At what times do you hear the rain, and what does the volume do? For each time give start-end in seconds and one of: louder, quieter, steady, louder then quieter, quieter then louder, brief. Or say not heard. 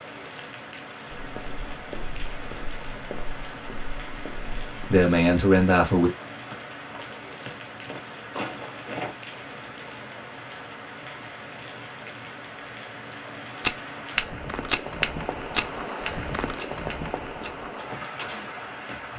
0.0-19.1 louder.